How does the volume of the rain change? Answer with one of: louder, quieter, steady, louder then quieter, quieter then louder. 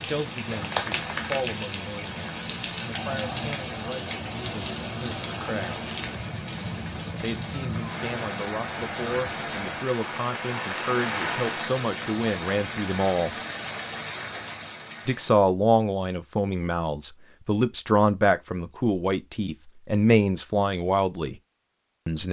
steady.